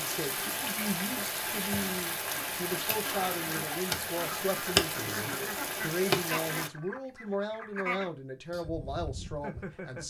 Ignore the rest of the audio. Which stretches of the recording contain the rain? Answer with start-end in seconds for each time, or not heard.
0.0-6.7.